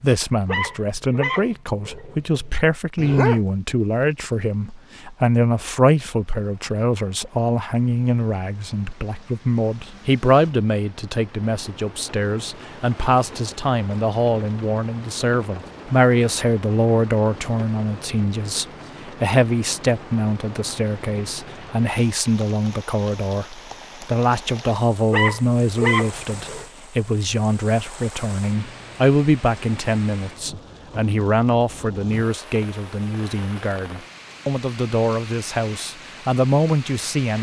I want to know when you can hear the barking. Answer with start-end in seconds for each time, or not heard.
0.5-3.4, 25.1-26.6.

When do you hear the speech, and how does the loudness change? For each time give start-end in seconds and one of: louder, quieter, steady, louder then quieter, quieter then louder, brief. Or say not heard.
0.0-37.3 steady.